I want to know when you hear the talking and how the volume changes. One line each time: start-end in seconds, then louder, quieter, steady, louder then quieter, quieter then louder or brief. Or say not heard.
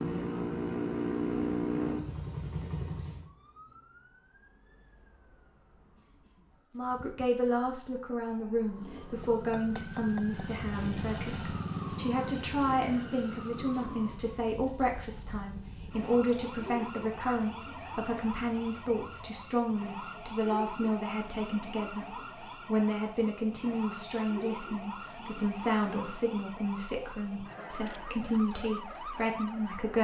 6.8-29.9 steady.